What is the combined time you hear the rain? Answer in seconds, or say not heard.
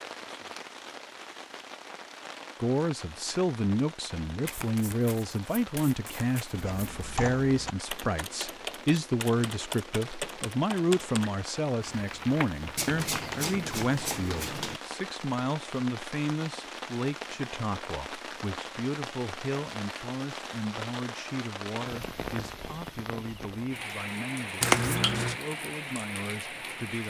27 s.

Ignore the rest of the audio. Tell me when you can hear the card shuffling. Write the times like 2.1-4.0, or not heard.
4.5-7.0, 12.8-14.8, 24.6-25.4.